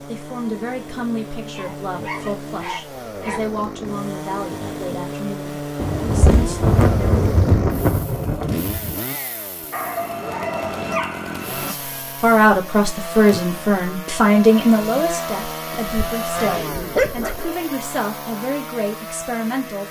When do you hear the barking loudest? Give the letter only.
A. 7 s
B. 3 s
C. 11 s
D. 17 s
D.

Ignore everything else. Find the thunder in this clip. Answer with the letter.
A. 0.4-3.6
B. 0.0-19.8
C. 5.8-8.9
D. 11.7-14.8
C.